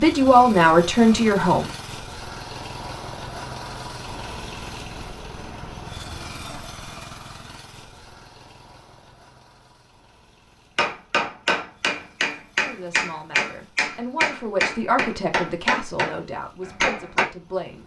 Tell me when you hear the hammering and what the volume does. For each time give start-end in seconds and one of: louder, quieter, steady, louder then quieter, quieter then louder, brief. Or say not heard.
10.8-17.2 steady.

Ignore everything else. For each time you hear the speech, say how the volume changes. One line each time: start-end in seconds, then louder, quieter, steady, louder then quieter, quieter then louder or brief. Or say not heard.
0.0-1.6 brief
12.6-17.8 louder then quieter.